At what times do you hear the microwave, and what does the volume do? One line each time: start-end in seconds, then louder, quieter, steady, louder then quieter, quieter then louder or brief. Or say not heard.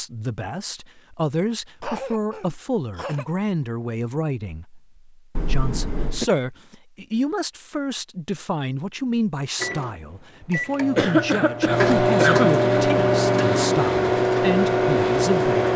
9.6-15.7 louder.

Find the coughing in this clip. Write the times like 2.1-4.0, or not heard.
1.8-3.2, 5.3-6.3, 10.9-12.5.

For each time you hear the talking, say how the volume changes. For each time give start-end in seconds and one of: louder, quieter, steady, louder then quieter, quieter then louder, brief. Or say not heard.
0.0-15.6 steady.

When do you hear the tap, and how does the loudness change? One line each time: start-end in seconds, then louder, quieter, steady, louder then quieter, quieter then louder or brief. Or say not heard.
not heard.